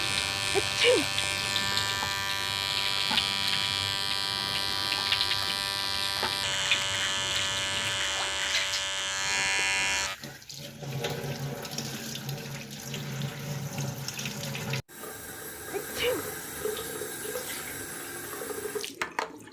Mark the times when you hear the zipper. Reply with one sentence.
The zipper can't be heard in this clip.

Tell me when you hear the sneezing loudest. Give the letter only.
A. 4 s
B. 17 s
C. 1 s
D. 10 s
C.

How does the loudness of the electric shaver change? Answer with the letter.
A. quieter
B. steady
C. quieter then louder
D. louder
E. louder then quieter
B.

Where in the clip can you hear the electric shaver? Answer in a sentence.
You can hear the electric shaver from 0.0 to 10.2 s.